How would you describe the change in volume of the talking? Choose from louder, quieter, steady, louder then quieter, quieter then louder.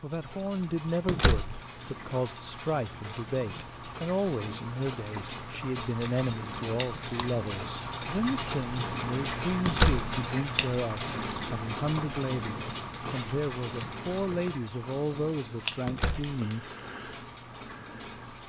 steady.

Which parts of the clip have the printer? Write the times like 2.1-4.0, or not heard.
not heard.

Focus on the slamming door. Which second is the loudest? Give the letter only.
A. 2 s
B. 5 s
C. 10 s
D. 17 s
C.